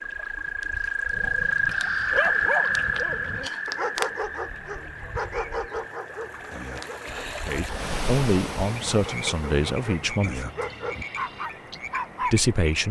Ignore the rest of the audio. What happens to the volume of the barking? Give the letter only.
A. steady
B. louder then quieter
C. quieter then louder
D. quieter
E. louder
C.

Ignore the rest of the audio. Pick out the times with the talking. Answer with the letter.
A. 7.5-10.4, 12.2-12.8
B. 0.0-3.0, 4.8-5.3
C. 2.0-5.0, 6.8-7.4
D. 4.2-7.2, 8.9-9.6
A.